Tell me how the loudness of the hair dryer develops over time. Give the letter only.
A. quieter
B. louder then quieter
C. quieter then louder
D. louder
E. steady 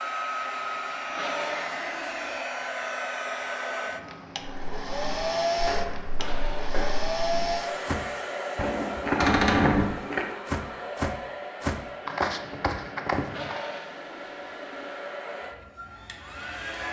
A.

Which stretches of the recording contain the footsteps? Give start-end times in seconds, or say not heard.
4.4-13.7.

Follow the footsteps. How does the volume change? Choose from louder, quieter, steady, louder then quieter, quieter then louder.
louder.